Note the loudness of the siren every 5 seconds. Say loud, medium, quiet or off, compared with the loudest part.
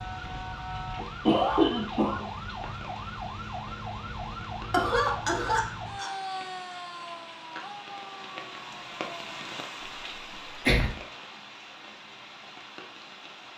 loud, loud, off.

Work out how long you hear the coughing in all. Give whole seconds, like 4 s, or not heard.
3 s.